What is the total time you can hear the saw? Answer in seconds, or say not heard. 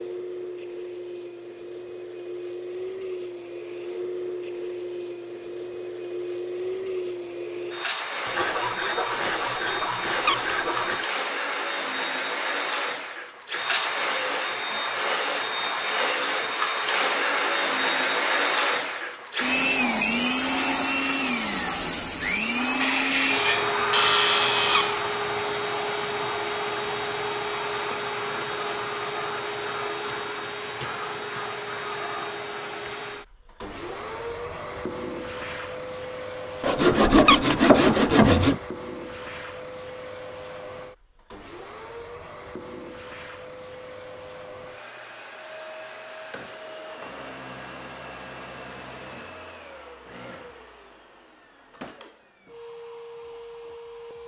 7 s.